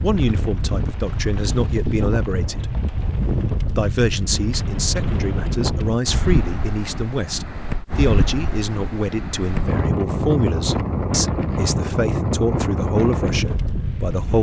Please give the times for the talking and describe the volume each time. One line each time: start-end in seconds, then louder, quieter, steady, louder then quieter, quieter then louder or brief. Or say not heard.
0.0-2.8 brief
3.8-14.3 steady.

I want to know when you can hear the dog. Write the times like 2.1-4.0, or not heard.
not heard.